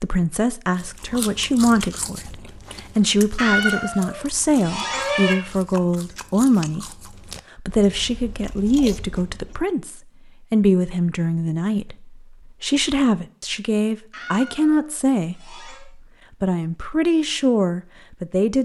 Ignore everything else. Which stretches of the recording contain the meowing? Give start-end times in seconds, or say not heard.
3.4-5.3, 14.1-15.8.